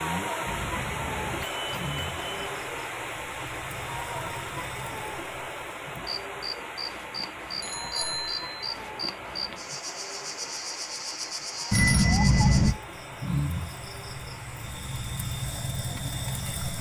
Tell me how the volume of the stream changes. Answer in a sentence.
The loudness of the stream goes down.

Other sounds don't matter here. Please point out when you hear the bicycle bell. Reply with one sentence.
You can hear the bicycle bell from 0.5 to 2.5 s, from 7.6 to 8.7 s and from 11.7 to 12.7 s.